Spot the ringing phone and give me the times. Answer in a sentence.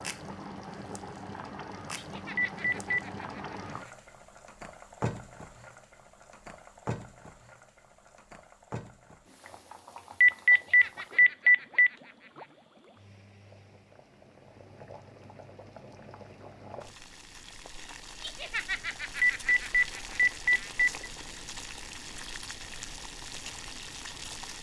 You can hear the ringing phone from 2.4 to 3.0 s, from 10.2 to 11.9 s and from 19.2 to 21.1 s.